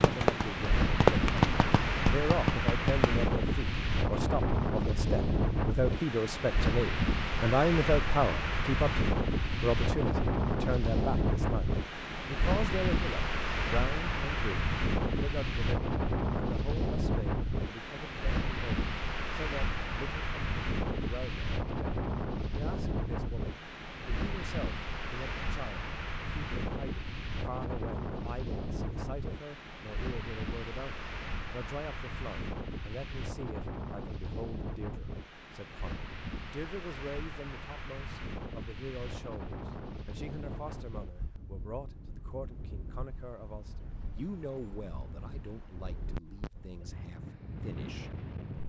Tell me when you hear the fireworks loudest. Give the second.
1 s.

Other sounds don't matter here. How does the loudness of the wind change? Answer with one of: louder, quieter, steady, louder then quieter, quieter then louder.
quieter.